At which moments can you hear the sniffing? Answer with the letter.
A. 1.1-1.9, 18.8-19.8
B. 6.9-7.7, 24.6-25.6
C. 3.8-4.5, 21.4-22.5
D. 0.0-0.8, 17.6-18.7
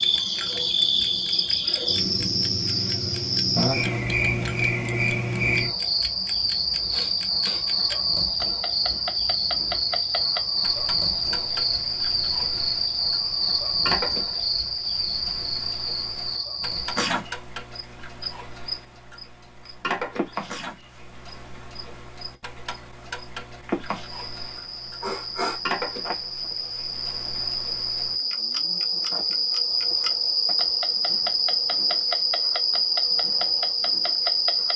B.